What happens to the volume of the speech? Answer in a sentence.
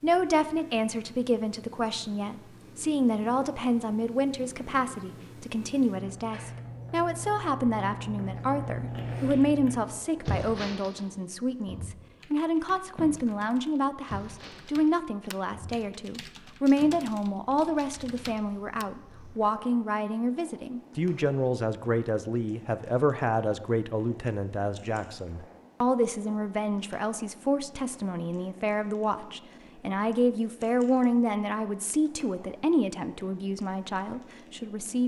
The loudness of the speech stays about the same.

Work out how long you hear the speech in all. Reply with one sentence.
The speech can be heard for 35 seconds in total.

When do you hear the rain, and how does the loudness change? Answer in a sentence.
The rain can't be heard in this clip.